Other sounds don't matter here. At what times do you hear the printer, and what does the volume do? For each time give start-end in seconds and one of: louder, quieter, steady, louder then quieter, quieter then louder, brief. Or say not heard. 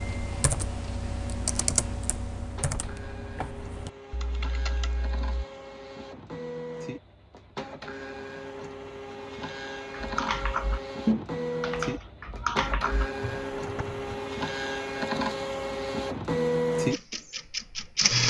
0.0-18.2 louder.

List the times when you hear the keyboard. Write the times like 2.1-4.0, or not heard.
0.0-5.3, 9.9-14.2.